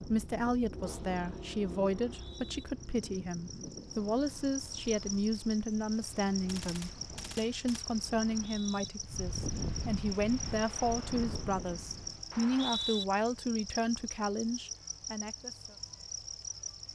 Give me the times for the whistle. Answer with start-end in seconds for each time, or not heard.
1.9-2.6, 8.2-8.9, 12.3-13.1.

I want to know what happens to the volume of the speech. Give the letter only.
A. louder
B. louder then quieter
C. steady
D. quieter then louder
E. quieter
C.